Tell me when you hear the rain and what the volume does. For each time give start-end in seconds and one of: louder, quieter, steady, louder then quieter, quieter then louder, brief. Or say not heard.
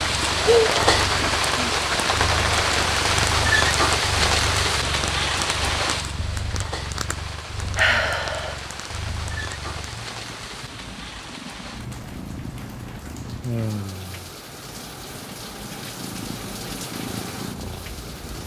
0.0-18.4 quieter.